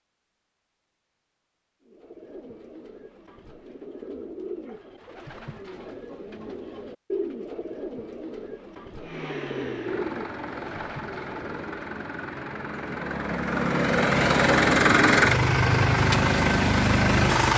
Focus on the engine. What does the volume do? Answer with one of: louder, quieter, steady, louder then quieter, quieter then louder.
louder.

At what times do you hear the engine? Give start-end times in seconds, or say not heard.
9.0-17.5.